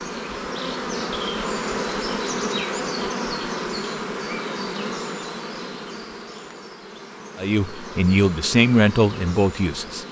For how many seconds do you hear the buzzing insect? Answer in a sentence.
The buzzing insect can be heard for 10 seconds in total.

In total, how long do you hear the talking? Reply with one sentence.
The talking can be heard for 3 seconds in total.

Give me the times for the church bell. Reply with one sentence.
You can't hear the church bell here.